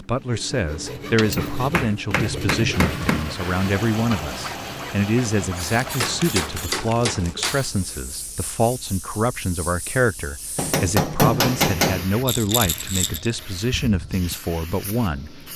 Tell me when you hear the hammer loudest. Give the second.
11 s.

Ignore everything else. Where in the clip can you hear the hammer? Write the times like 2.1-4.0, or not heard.
1.4-3.3, 6.0-7.6, 10.6-12.1.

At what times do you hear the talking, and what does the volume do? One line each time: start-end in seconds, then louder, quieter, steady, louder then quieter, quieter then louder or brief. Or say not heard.
0.0-15.4 steady.